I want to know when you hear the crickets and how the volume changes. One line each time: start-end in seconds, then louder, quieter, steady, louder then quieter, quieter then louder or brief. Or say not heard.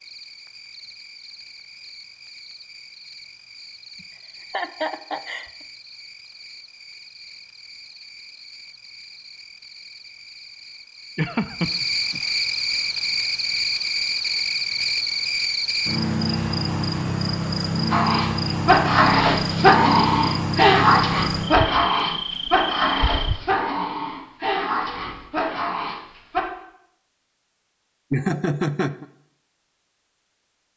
0.0-23.4 louder.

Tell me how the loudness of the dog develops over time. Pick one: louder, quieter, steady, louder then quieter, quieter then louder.
quieter.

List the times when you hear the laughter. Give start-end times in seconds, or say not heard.
4.0-5.5, 11.2-12.2, 28.1-29.1.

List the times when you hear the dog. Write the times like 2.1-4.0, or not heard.
17.9-26.4.